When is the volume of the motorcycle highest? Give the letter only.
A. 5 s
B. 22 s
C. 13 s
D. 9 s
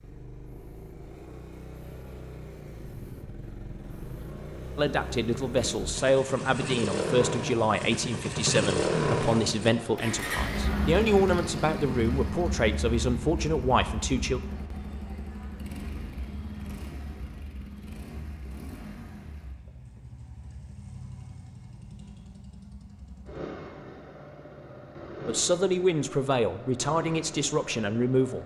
D.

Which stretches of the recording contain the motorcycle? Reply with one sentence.
You can hear the motorcycle from 0.0 to 28.4 s.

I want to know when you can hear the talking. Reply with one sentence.
The talking can be heard from 4.8 to 14.4 s and from 25.2 to 28.4 s.